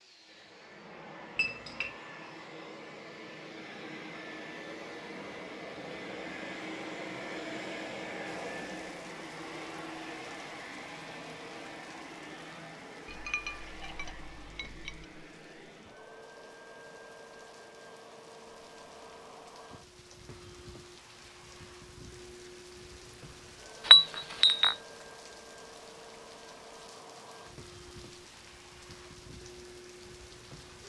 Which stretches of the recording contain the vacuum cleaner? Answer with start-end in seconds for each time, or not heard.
0.0-30.8.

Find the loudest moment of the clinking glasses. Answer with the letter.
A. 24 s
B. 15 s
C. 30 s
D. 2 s
A.